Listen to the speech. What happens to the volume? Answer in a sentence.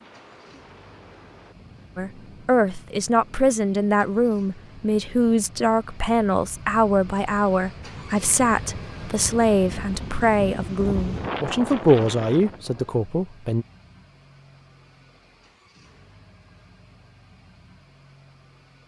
The loudness of the speech stays about the same.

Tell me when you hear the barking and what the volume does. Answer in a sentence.
You can't hear the barking here.